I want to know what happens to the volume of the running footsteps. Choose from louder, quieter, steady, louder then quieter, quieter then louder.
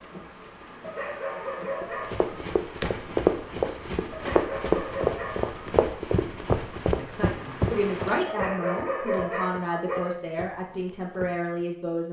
quieter.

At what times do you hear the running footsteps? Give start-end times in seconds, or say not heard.
1.8-11.6.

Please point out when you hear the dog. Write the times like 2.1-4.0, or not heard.
0.8-2.2, 4.1-5.5, 8.2-10.2.